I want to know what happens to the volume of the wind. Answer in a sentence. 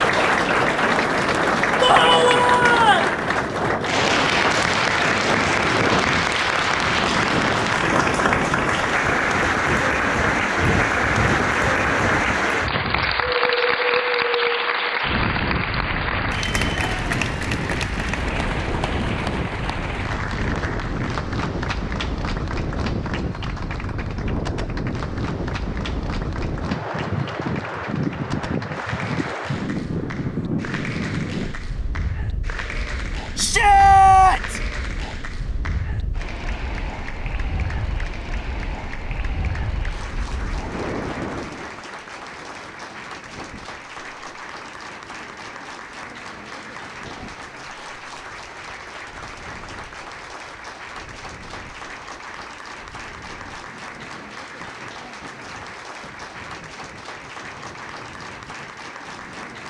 The loudness of the wind goes down.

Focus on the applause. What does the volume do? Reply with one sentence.
The loudness of the applause goes down.